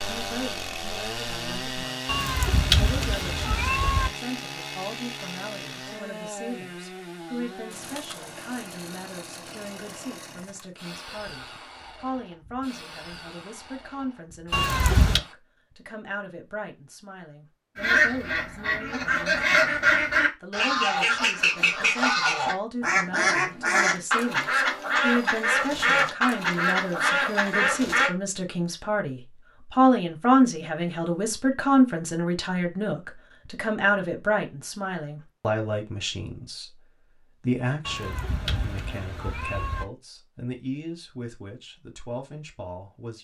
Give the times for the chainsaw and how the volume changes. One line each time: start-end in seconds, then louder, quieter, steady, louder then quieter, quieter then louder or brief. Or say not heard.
0.0-15.3 quieter.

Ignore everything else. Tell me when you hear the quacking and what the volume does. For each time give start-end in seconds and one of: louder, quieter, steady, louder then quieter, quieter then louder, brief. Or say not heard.
17.8-28.1 steady.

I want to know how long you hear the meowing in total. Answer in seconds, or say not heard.
5 s.